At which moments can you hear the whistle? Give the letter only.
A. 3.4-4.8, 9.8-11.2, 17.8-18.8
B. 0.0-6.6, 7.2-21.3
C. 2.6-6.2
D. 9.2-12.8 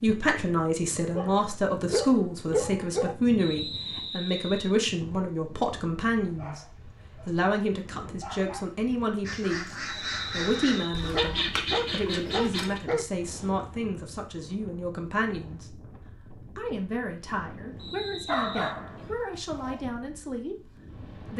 A.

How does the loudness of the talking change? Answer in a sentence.
The loudness of the talking goes down.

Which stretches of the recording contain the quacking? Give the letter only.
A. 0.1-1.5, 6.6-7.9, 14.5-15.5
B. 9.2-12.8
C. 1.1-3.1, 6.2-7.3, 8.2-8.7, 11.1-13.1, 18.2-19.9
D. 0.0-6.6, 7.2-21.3
B.